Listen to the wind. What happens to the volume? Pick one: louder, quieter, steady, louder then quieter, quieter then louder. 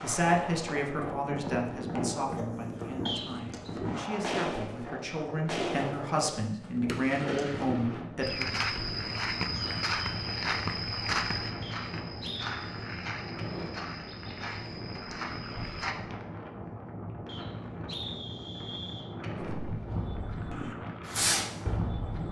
steady.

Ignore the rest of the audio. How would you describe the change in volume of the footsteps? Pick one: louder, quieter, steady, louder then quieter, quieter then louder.
quieter.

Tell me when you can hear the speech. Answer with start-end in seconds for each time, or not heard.
0.0-8.4.